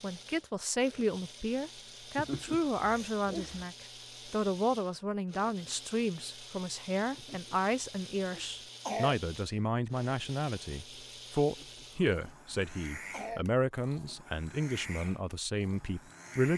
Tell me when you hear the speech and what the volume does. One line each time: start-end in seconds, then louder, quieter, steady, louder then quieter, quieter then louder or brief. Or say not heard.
0.0-16.5 steady.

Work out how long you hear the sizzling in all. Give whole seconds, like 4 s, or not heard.
not heard.